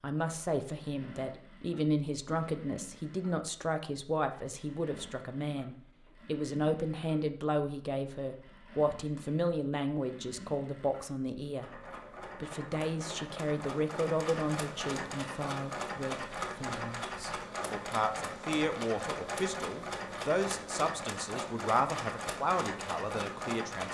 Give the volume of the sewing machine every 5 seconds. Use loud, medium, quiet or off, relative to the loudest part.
quiet, quiet, medium, loud, loud.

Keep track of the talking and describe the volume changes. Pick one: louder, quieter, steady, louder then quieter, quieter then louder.
steady.